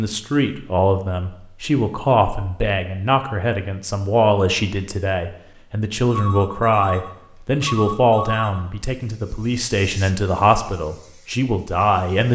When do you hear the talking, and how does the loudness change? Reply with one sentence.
The talking can be heard from 0.0 to 12.3 s, at a steady volume.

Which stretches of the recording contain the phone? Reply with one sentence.
You can hear the phone from 6.0 to 8.7 s.